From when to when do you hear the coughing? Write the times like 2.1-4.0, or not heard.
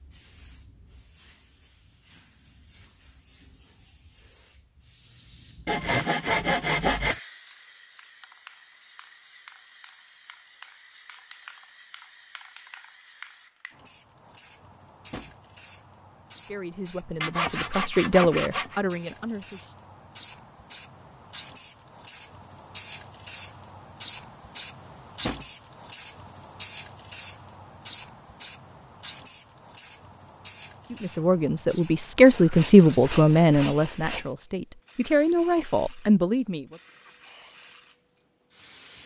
not heard.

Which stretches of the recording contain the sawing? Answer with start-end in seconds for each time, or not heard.
5.7-7.2, 17.2-18.8, 32.3-34.3.